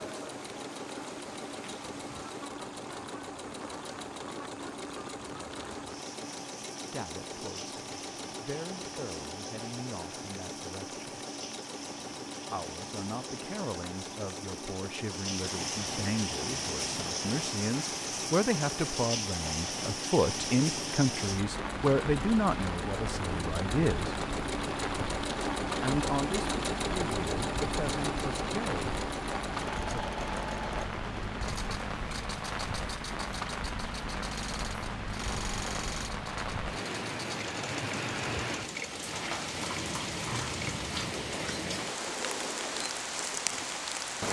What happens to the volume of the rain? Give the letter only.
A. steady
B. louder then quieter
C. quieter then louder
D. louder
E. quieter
D.